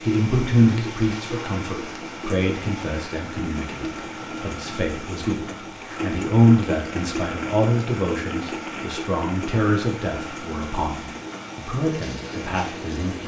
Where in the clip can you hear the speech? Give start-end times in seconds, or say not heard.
0.0-13.2.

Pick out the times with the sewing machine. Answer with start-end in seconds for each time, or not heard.
0.0-13.2.